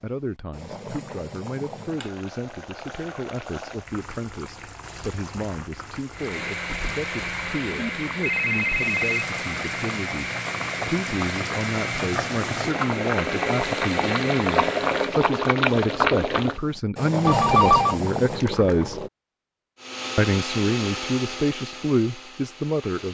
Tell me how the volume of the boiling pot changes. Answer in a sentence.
The loudness of the boiling pot goes up.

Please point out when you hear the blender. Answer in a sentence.
You can hear the blender from 6.1 to 15.2 s and from 19.8 to 23.1 s.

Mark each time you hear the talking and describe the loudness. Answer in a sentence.
The talking can be heard from 0.0 to 19.0 s, getting louder; and briefly from 20.1 to 23.1 s.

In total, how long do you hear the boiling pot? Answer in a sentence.
You can hear the boiling pot for 19 seconds altogether.